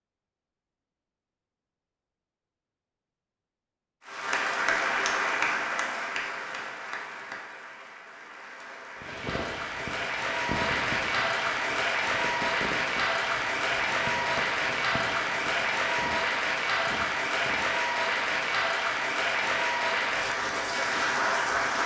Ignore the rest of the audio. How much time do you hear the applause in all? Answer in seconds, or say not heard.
18 s.